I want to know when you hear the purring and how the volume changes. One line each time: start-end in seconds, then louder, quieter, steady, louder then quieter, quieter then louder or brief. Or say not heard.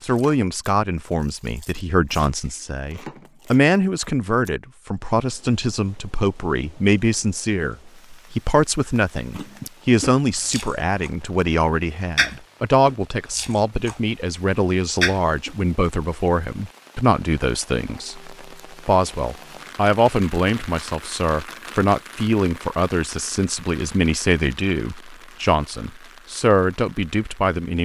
not heard.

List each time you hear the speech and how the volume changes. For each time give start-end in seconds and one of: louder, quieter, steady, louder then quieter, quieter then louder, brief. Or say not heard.
0.0-27.8 steady.